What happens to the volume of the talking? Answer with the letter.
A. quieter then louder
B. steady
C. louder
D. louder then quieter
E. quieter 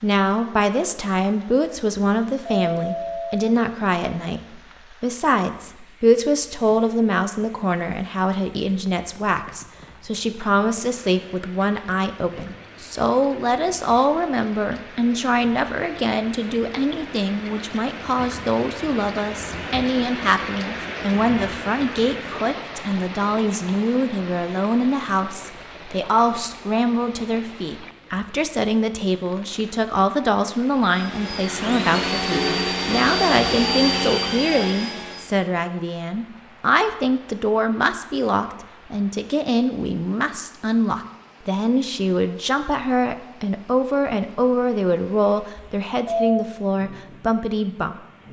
B.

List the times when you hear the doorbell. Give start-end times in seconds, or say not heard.
2.0-3.5, 45.5-46.5.